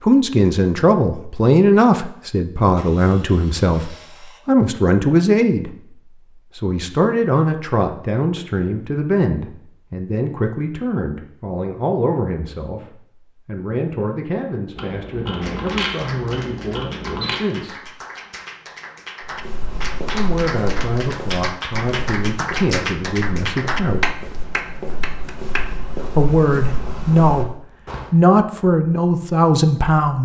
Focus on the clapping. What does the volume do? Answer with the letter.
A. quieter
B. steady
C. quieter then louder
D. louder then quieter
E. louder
E.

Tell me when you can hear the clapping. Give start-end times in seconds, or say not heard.
15.4-25.8.